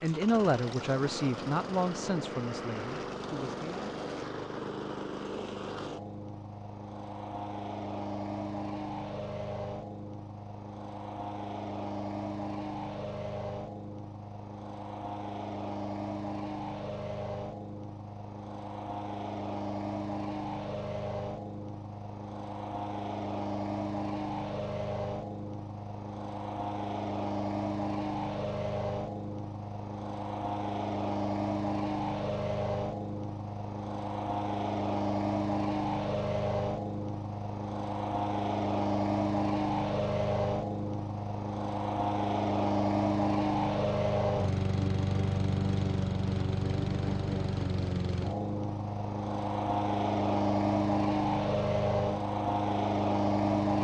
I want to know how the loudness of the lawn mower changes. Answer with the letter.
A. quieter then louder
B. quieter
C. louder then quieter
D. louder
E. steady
D.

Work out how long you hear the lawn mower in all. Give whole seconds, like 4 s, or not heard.
54 s.